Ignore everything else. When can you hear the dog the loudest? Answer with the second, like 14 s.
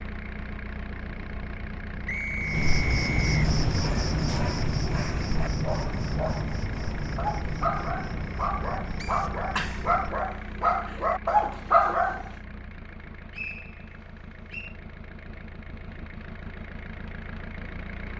12 s.